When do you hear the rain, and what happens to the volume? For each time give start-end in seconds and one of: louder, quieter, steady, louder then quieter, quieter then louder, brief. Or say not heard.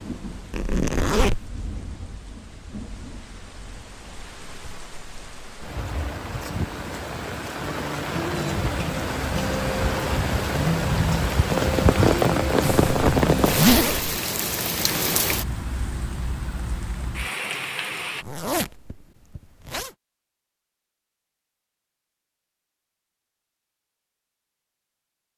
0.0-18.2 louder then quieter.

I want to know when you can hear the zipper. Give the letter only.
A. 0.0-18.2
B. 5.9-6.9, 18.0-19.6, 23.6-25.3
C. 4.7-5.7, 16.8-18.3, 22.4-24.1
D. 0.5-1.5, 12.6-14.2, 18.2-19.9
D.